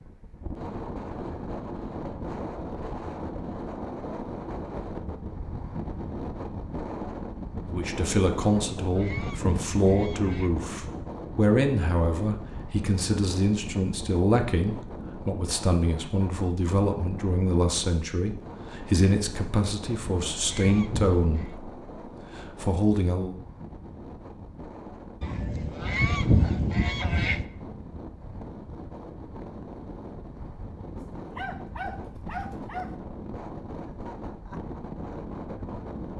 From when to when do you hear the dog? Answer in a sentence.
You can hear the dog from 31.0 to 32.9 s.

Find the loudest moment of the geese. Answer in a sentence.
The loudest moment of the geese is at 26 seconds.